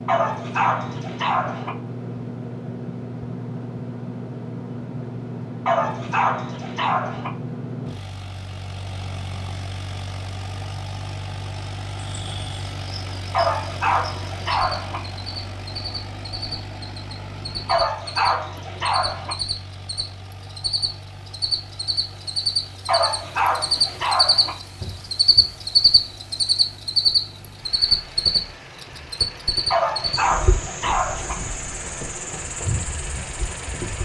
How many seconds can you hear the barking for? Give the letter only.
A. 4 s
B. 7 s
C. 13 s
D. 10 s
D.